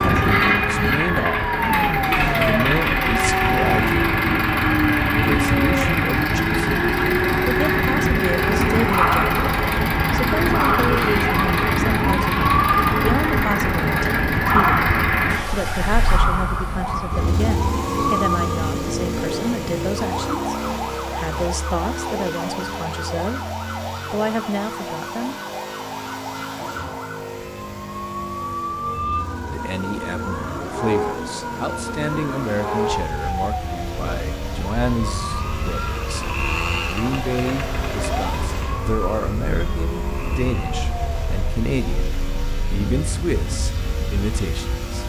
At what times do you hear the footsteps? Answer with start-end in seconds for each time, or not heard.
not heard.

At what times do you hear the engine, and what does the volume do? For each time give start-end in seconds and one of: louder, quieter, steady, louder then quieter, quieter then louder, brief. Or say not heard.
0.0-45.0 quieter.